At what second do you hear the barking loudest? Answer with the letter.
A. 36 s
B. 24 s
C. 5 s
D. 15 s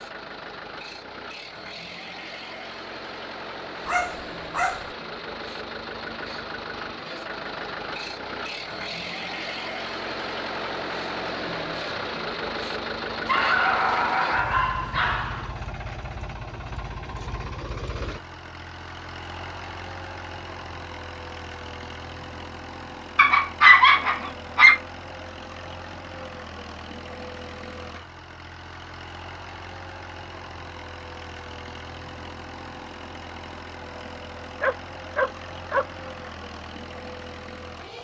B.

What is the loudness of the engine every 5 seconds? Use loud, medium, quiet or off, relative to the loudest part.
medium, loud, loud, medium, medium, medium, medium, medium.